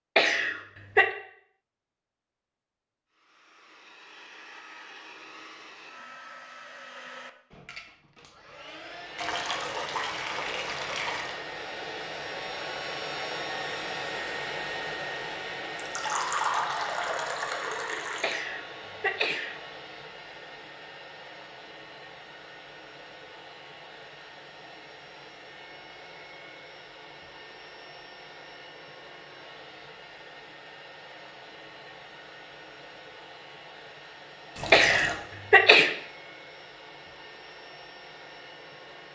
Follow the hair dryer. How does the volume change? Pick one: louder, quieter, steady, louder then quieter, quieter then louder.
louder then quieter.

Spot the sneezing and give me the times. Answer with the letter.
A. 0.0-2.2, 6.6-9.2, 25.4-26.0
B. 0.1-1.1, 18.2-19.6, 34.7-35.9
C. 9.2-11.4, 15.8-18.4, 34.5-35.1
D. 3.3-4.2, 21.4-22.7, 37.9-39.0
B.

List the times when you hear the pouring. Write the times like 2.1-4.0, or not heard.
9.2-11.4, 15.8-18.4, 34.5-35.1.